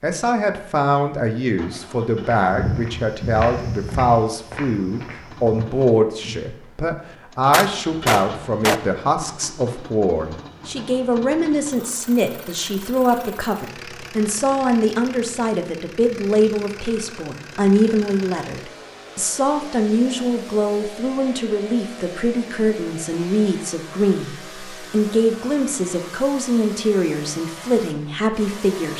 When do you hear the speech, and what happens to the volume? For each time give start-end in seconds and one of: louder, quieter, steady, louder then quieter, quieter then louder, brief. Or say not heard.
0.0-28.9 steady.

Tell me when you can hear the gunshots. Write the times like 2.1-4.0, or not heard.
7.5-8.8.